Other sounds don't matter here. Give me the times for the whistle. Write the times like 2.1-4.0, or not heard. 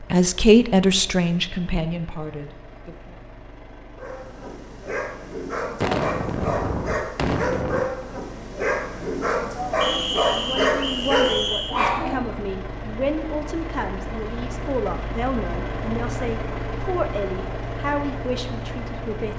9.8-11.8.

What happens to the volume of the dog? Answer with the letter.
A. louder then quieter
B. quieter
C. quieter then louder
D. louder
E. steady
D.